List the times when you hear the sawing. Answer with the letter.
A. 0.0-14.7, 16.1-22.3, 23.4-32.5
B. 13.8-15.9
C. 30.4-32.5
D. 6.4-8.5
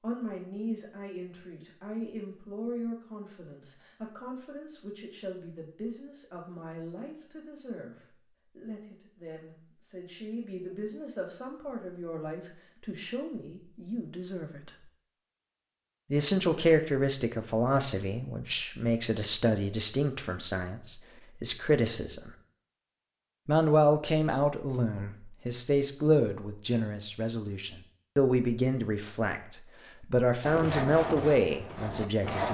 C.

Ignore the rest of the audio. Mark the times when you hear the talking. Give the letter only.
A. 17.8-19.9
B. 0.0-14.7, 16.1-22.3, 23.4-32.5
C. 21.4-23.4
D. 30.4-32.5
B.